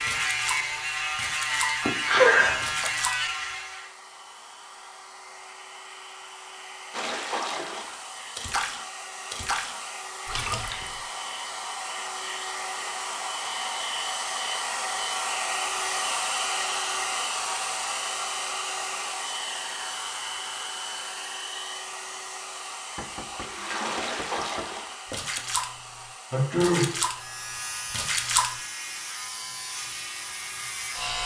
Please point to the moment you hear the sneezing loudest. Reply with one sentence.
The loudest moment of the sneezing is at 2 seconds.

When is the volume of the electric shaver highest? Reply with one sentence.
The volume of the electric shaver peaks at 2 seconds.